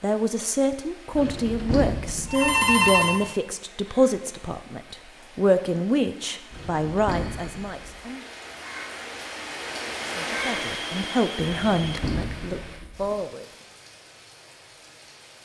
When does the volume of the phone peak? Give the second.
3 s.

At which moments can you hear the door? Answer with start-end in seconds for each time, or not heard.
1.1-2.5, 6.5-8.0, 11.4-13.2.